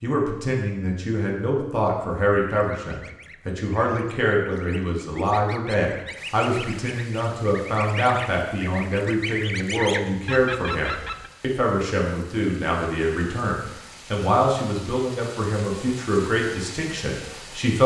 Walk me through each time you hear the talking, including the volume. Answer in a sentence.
You can hear the talking from 0.0 to 17.8 s, at a steady volume.